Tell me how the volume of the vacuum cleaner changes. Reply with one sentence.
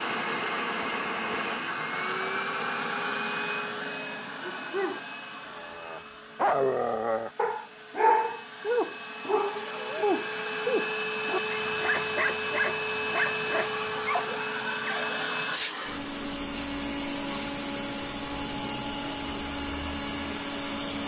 The loudness of the vacuum cleaner goes down, then up.